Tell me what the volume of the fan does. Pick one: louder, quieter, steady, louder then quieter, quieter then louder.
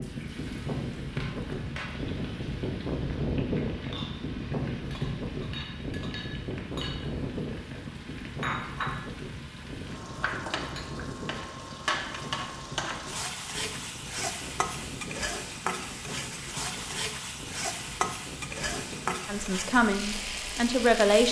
quieter.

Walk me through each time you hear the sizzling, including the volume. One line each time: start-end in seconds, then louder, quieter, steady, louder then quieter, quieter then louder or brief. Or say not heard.
0.0-21.2 louder.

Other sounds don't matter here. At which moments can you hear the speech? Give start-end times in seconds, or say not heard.
19.2-21.2.